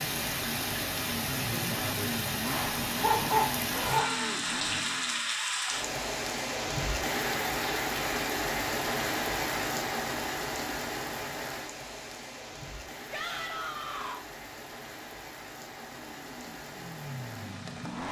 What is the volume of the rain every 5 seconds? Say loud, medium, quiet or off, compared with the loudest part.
loud, loud, medium, quiet.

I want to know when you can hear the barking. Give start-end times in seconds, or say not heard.
3.0-4.6.